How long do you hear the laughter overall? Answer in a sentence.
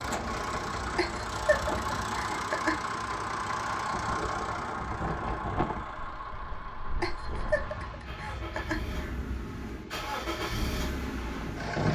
The laughter can be heard for 4 seconds in total.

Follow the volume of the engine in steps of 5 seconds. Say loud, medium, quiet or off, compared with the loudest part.
loud, medium, loud.